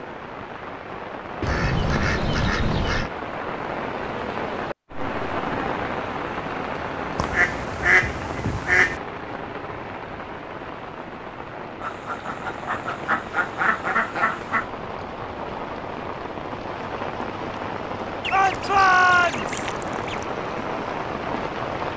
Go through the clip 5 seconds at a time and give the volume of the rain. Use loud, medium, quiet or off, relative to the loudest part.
loud, loud, medium, loud, loud.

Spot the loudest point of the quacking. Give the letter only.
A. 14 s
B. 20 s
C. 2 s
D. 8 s
D.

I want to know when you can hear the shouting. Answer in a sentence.
You can hear the shouting from 18.3 to 19.5 s.